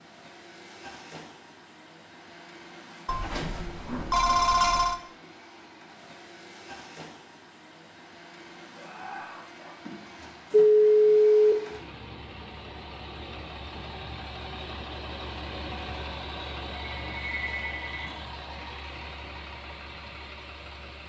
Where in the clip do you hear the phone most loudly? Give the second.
11 s.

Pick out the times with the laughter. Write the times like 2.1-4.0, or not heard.
8.8-9.8.